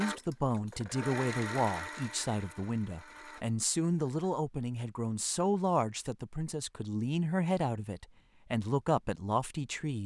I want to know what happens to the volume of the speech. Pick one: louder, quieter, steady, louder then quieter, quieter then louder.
steady.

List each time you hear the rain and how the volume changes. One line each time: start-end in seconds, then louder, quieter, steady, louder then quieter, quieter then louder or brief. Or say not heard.
not heard.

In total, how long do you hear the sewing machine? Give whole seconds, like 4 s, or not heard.
4 s.